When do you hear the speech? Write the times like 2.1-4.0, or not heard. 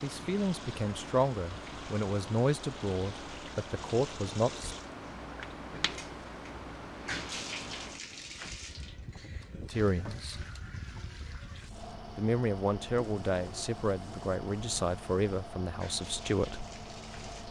0.0-4.8, 9.6-10.4, 12.2-16.6.